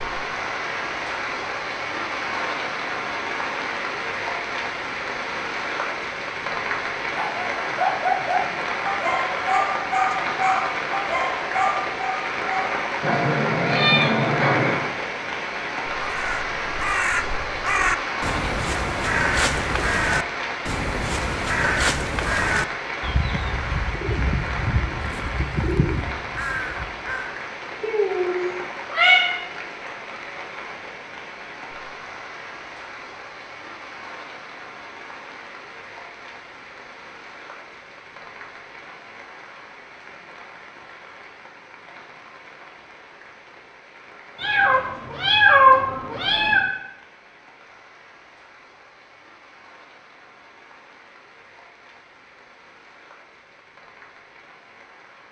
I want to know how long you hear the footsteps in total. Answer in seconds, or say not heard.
not heard.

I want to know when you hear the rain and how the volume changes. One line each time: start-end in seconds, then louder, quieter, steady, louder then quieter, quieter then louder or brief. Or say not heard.
0.0-55.2 quieter.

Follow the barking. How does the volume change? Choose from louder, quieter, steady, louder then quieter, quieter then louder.
steady.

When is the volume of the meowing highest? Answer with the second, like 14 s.
46 s.